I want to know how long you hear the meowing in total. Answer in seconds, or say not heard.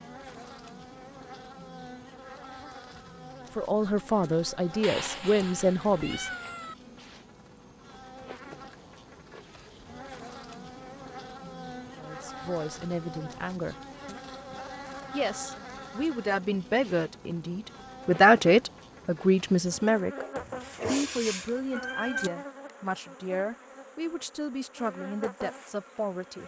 4 s.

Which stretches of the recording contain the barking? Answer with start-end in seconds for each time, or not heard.
20.1-21.1.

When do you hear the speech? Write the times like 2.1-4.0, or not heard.
3.5-6.3, 11.9-13.8, 15.1-20.2, 20.9-26.4.